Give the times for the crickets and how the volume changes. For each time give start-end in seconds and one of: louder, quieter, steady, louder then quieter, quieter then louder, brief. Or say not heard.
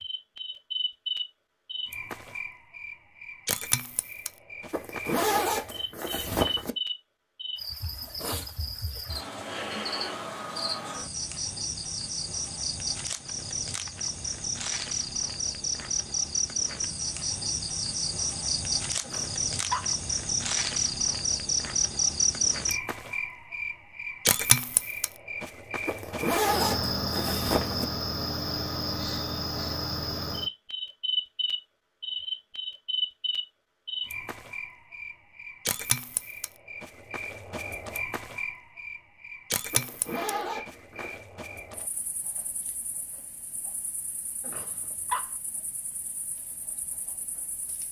0.0-47.8 louder then quieter.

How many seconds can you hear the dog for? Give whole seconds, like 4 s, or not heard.
2 s.